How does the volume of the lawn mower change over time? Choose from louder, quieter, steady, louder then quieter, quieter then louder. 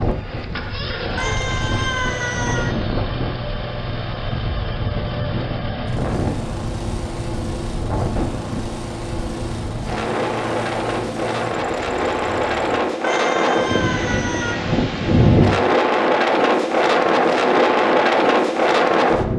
steady.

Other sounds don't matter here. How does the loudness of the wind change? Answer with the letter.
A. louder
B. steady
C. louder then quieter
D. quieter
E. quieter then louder
A.